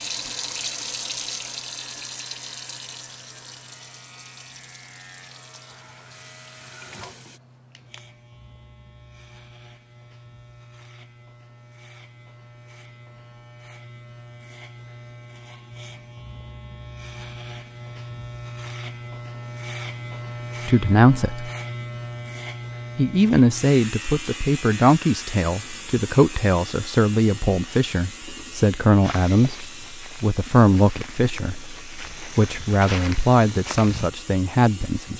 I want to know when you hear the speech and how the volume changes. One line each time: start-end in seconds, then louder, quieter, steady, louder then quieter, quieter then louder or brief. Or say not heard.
20.6-21.5 brief
22.9-35.1 steady.